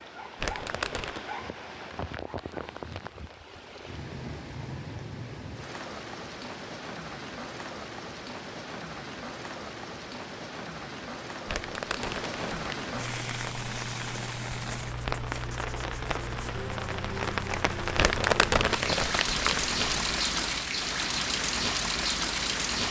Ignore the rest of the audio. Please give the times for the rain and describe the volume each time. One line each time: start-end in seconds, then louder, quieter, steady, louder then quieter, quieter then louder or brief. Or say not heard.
0.0-22.8 louder.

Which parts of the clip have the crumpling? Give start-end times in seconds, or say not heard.
0.3-1.2, 11.4-12.8, 17.9-20.1.